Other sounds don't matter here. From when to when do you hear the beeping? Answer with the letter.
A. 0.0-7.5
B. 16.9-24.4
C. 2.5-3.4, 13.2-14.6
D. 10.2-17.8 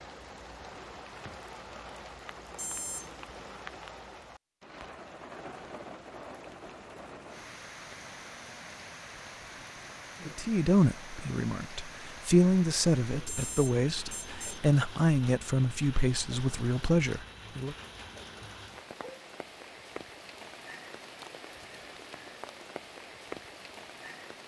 C.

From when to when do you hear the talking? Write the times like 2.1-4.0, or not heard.
10.2-17.8.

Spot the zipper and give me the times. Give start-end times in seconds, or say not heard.
not heard.